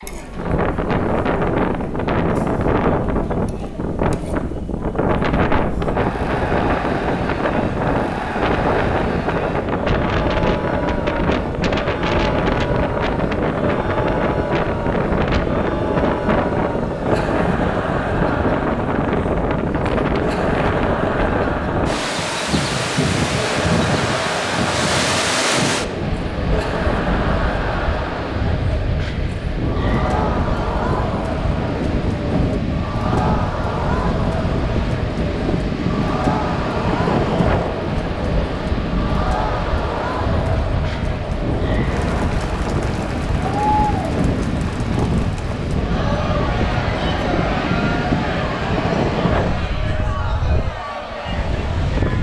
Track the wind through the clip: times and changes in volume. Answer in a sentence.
You can hear the wind from 0.0 to 52.1 s, at a steady volume.